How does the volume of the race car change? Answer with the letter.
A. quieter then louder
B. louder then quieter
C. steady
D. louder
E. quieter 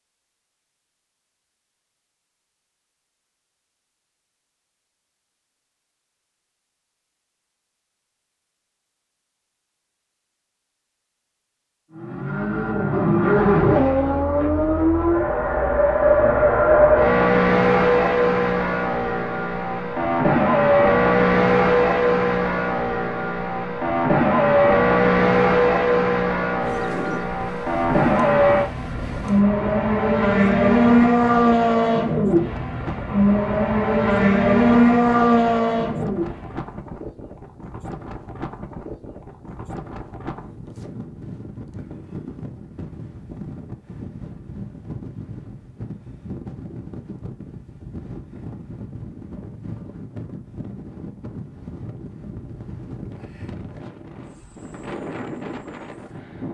C.